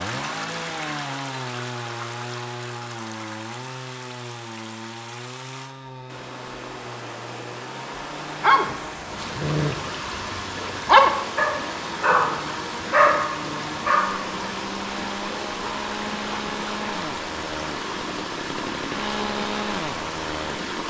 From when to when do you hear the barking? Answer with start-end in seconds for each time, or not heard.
8.4-14.2.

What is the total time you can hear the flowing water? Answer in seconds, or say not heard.
21 s.